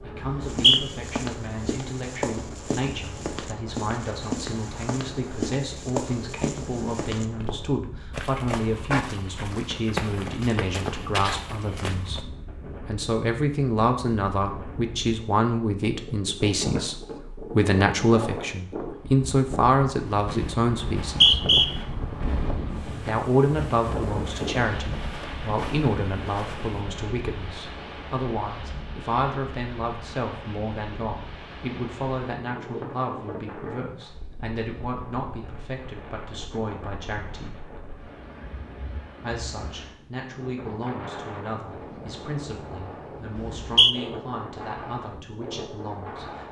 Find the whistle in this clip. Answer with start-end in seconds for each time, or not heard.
0.2-0.8, 21.1-21.7, 43.4-44.0.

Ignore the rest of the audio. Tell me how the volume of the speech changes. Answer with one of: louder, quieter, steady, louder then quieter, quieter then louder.
louder then quieter.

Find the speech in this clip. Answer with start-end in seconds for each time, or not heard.
0.0-12.2, 12.8-21.4, 23.1-37.5, 39.2-46.4.